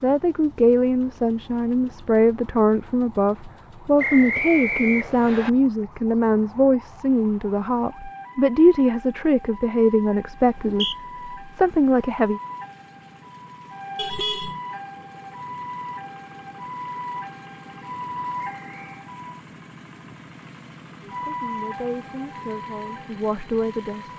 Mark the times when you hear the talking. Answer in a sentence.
You can hear the talking from 0.0 to 12.4 s and from 21.1 to 24.1 s.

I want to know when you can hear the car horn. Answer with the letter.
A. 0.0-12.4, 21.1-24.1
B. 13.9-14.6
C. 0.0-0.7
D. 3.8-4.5
B.